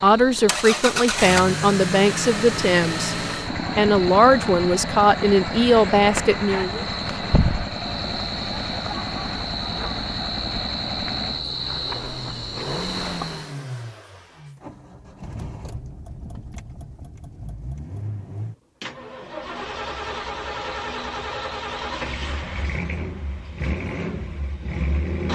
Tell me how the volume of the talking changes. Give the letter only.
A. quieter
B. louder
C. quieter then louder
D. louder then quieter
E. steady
E.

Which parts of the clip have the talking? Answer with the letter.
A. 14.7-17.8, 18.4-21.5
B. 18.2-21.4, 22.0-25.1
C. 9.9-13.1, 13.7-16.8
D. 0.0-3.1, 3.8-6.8
D.